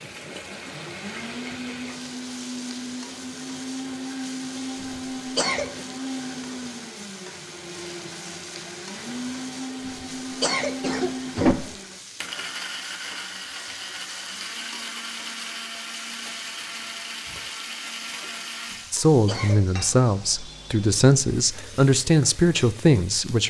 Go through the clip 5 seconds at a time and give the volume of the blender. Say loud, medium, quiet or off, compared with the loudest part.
loud, loud, loud, loud, off.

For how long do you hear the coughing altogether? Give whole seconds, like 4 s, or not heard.
4 s.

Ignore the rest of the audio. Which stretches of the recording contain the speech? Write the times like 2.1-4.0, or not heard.
18.9-23.4.